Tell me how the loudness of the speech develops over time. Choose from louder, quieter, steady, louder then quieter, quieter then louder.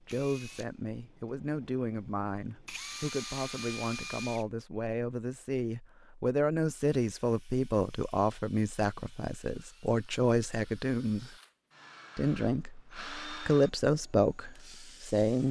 louder.